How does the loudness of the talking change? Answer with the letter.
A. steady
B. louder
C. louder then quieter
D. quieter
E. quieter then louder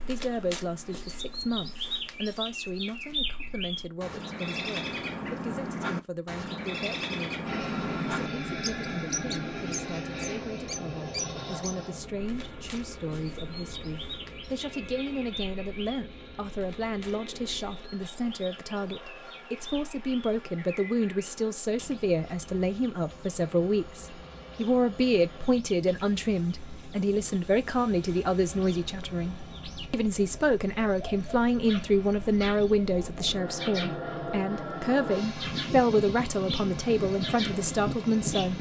B.